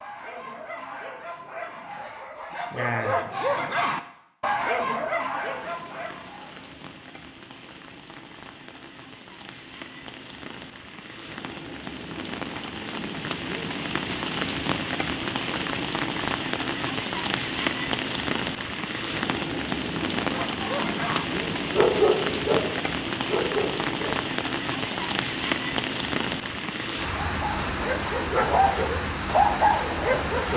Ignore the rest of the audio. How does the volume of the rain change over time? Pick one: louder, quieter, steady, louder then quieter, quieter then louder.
louder.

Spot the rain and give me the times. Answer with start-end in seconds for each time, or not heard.
5.3-30.5.